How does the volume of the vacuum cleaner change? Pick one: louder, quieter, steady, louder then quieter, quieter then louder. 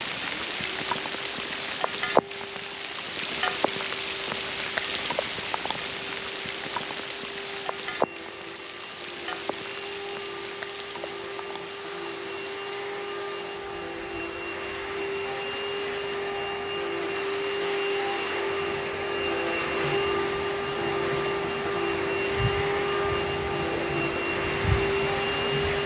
louder.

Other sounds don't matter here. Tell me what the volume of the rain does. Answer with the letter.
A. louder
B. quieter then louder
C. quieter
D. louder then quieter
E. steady
B.